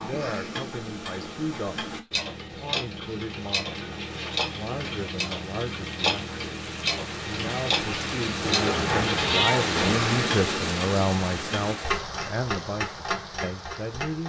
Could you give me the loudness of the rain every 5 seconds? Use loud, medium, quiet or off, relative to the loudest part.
off, loud, loud.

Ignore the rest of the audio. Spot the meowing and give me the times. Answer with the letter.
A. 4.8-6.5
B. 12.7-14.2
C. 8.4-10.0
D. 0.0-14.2
C.